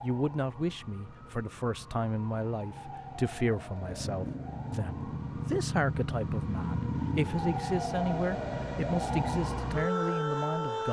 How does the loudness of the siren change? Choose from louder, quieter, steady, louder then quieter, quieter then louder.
louder.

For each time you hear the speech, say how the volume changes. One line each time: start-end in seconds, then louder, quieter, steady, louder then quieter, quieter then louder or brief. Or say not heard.
0.0-10.8 steady.